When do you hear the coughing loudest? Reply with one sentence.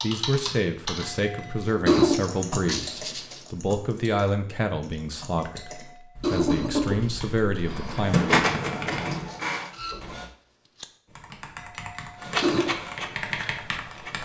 The loudest moment of the coughing is at 2 seconds.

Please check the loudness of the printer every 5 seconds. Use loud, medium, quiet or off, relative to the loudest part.
off, loud, medium.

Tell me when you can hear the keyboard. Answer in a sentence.
You can hear the keyboard from 0.0 to 9.1 s and from 11.1 to 14.2 s.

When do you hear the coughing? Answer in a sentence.
The coughing can be heard from 1.0 to 2.1 s, from 5.4 to 7.0 s and from 11.6 to 12.7 s.